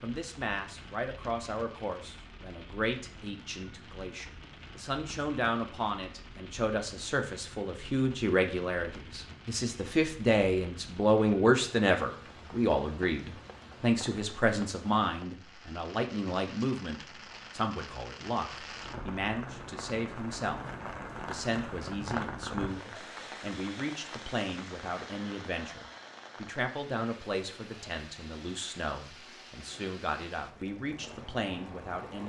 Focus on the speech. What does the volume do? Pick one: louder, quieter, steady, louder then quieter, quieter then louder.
louder then quieter.